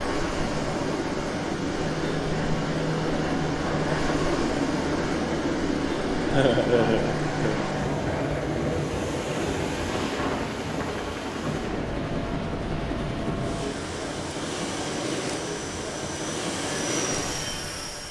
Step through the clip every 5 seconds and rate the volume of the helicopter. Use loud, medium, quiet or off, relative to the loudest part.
loud, loud, medium, medium.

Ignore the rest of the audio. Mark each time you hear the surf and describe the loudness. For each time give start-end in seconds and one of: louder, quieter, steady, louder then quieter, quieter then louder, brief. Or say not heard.
0.0-18.0 steady.